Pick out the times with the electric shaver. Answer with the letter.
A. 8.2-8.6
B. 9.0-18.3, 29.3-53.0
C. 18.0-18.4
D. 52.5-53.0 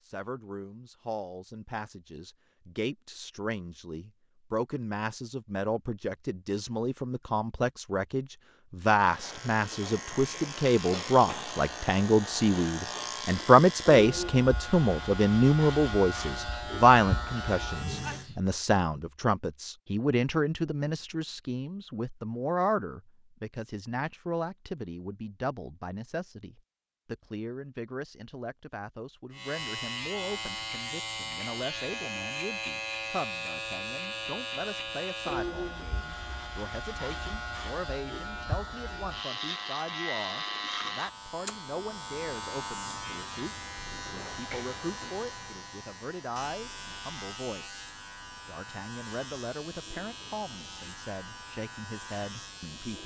B.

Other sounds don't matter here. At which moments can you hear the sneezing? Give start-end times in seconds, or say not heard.
18.0-18.4.